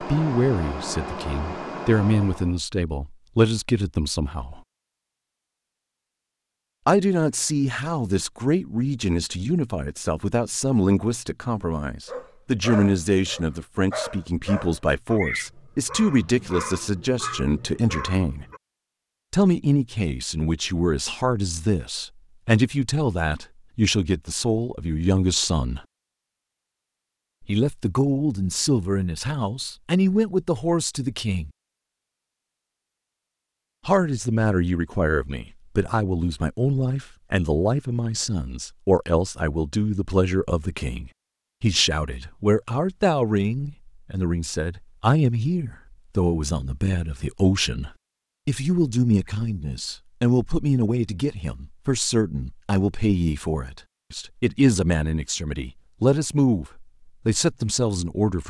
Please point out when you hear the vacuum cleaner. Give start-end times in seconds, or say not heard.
0.0-2.6.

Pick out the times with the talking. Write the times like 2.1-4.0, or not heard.
0.0-4.6, 6.8-18.4, 19.3-25.8, 27.4-31.5, 33.9-58.4.